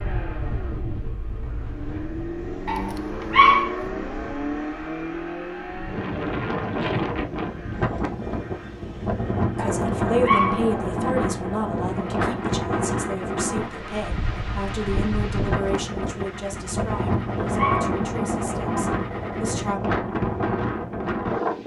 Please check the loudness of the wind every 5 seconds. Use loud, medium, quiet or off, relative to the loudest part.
quiet, loud, loud, loud, loud.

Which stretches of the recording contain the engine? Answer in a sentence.
You can hear the engine from 0.0 to 19.8 s.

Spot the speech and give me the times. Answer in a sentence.
You can hear the speech from 9.6 to 19.8 s.